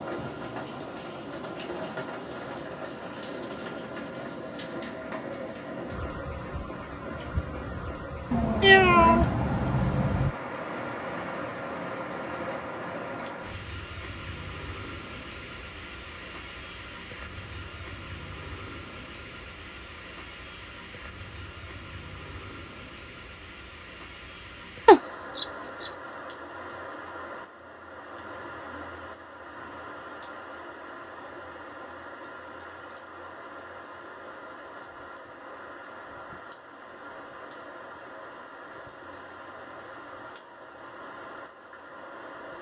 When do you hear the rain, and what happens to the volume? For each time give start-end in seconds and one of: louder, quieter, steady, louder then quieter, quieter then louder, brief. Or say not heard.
0.0-42.5 quieter.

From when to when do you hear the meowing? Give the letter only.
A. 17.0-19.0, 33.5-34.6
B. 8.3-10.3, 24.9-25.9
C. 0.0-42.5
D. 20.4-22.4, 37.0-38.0
B.